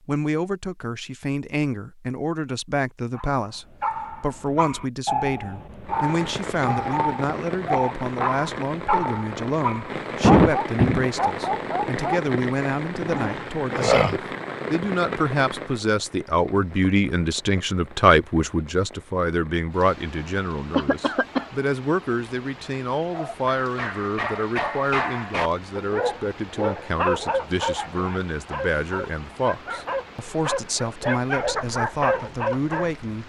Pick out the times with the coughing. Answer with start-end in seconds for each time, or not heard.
10.2-11.1, 20.7-21.4.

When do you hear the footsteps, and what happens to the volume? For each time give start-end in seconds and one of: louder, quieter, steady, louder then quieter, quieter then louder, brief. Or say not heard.
not heard.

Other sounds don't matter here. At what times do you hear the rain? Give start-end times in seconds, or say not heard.
5.8-33.2.